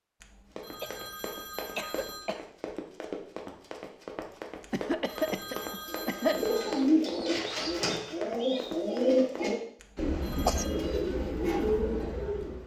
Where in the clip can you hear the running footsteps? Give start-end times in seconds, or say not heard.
0.5-9.6.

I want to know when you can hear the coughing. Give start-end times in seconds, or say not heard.
0.8-2.5, 4.7-6.5, 9.9-10.7.